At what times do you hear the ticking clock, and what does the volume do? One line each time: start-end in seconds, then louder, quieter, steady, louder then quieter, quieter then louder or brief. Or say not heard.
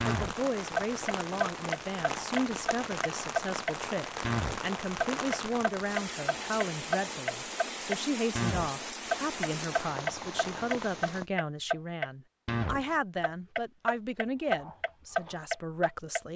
0.0-16.2 steady.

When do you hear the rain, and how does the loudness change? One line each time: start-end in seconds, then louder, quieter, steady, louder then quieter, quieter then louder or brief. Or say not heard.
0.0-11.2 steady.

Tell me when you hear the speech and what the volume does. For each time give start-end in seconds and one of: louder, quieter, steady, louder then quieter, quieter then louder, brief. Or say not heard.
0.1-16.3 steady.